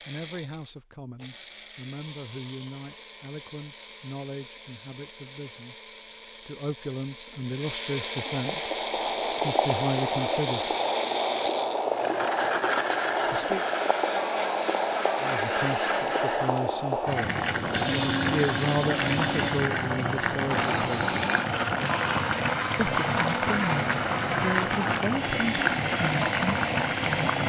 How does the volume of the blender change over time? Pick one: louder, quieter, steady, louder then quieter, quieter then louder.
louder.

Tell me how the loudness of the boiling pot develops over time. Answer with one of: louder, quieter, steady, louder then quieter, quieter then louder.
steady.